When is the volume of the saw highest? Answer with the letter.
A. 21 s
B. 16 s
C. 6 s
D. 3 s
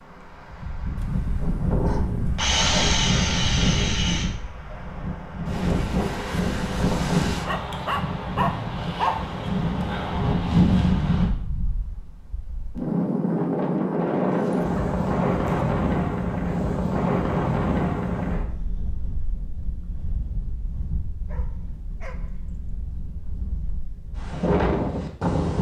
D.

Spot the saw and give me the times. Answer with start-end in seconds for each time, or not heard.
2.4-4.3.